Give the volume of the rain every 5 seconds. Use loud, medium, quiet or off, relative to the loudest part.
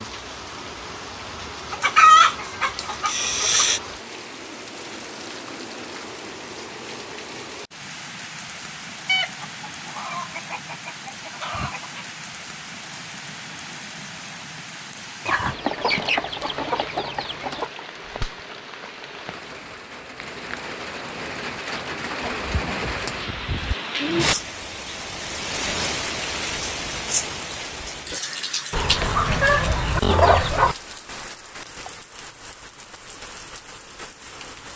medium, medium, medium, medium, loud, loud, medium.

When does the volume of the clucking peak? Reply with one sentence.
The volume of the clucking peaks at 2 seconds.